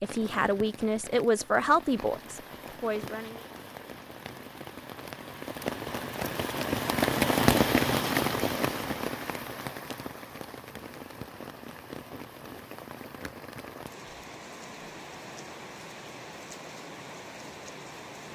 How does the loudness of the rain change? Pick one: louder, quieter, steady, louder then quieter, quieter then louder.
louder then quieter.